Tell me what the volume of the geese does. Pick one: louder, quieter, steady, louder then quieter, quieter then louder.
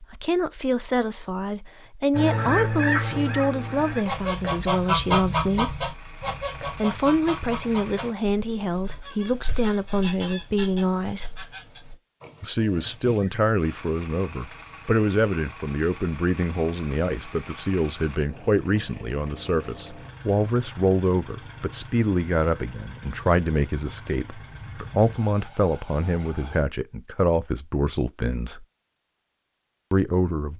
quieter.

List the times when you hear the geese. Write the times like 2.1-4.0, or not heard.
2.1-13.4.